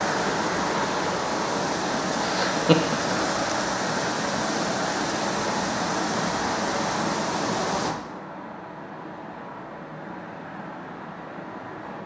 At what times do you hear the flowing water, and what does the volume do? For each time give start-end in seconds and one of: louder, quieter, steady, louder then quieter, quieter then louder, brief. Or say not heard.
0.0-12.0 quieter.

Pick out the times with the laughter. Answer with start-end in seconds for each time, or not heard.
2.2-3.3.